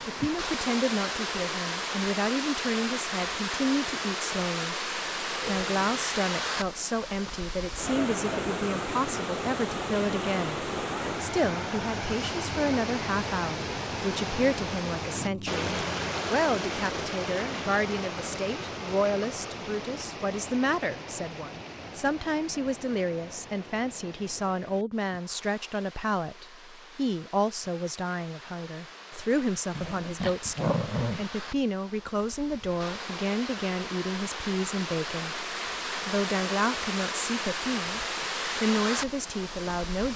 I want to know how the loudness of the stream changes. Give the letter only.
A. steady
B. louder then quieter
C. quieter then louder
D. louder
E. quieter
C.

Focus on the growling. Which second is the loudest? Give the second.
31 s.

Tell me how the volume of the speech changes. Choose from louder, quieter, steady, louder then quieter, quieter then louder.
steady.